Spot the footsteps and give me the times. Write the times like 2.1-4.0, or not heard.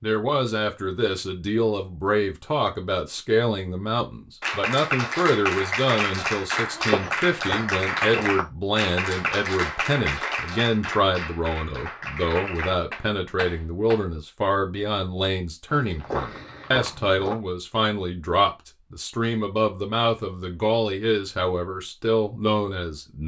6.7-8.4, 15.7-17.4.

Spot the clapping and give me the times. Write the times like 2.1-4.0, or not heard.
4.4-14.0.